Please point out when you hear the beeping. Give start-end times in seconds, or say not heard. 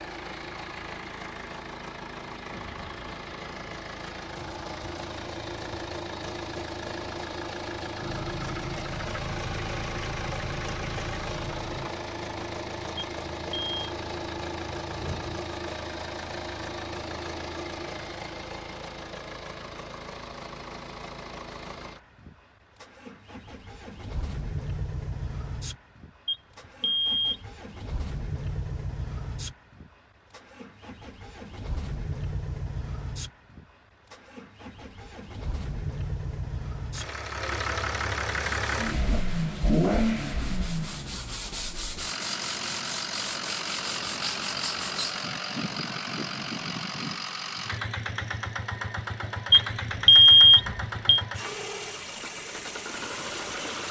12.9-13.7, 26.2-27.5, 49.5-51.2.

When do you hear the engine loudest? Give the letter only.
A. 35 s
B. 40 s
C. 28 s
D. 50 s
B.